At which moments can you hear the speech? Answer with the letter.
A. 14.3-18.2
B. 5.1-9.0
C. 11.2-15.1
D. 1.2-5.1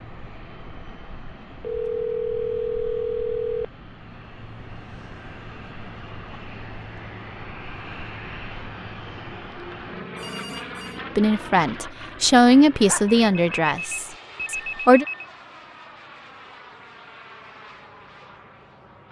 C.